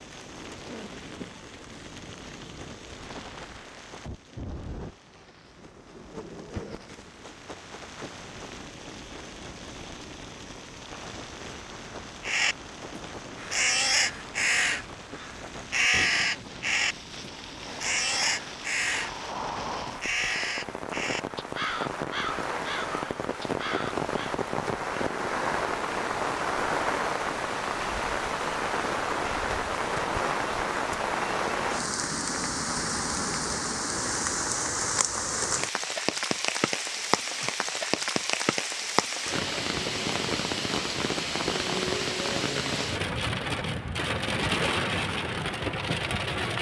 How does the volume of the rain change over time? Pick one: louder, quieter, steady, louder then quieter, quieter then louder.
louder.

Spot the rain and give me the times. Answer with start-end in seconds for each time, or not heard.
0.0-46.5.